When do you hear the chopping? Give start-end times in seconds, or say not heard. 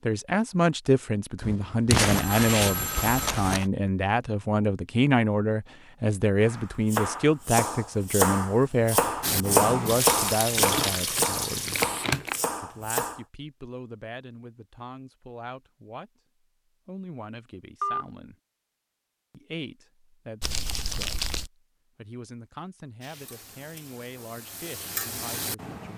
6.4-13.2.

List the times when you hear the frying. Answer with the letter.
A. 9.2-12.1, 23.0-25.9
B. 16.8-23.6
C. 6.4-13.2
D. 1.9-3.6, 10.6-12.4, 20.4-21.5
A.